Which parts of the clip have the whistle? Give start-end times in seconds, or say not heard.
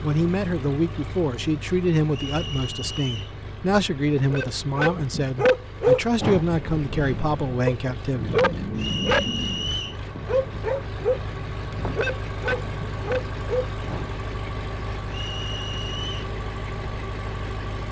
2.1-3.4, 8.8-10.0, 15.1-16.3.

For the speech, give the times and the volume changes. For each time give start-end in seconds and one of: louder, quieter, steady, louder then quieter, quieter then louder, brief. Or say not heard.
0.0-8.3 steady.